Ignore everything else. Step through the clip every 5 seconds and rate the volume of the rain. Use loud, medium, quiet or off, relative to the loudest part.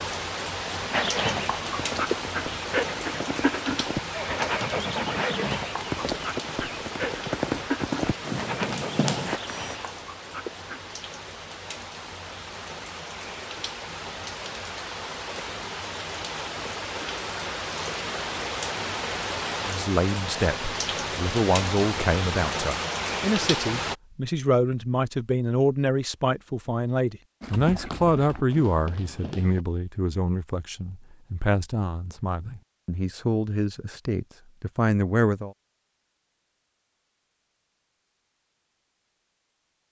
loud, medium, medium, loud, loud, off, off, off.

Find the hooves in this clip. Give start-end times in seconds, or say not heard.
0.9-9.8, 27.4-29.6.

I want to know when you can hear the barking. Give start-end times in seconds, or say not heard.
0.9-10.9.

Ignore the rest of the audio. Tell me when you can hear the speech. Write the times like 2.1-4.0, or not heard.
19.6-35.5.